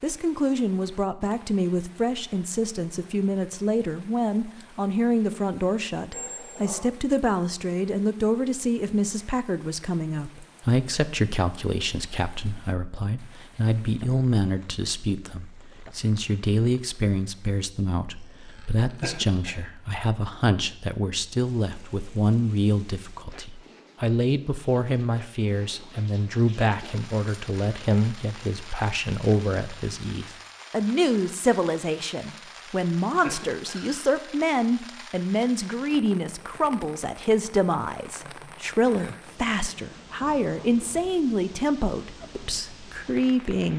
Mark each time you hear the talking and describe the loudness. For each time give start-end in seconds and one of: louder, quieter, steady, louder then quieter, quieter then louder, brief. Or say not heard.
0.0-43.7 steady.